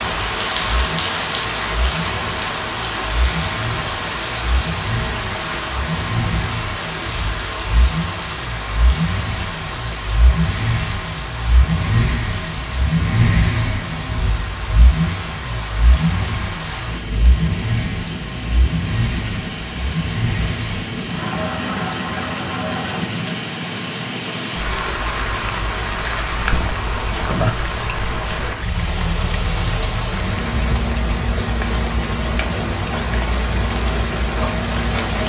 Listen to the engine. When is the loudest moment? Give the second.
13 s.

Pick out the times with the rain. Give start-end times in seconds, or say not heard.
0.0-35.2.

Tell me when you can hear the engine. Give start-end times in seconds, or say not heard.
0.0-23.2, 28.8-30.9.